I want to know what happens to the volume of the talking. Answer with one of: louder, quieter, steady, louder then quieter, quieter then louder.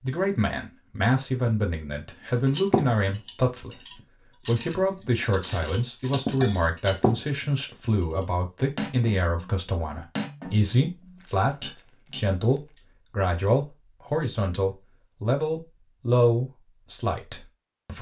steady.